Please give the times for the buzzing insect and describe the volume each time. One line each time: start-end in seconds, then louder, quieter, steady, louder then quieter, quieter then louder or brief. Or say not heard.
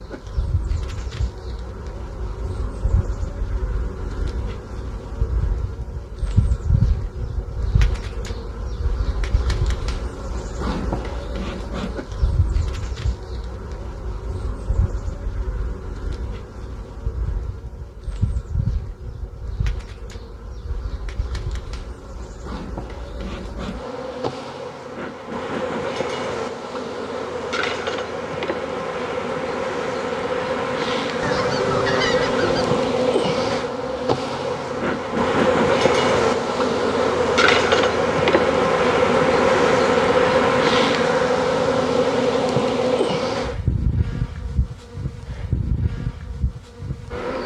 0.0-47.4 louder.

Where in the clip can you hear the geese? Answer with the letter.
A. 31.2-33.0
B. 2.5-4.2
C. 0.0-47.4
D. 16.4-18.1
A.